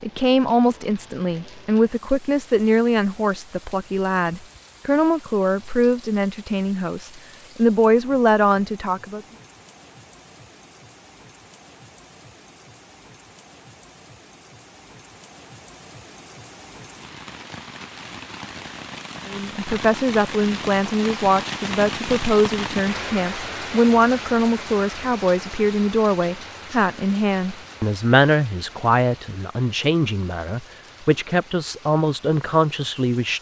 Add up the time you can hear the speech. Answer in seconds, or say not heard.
23 s.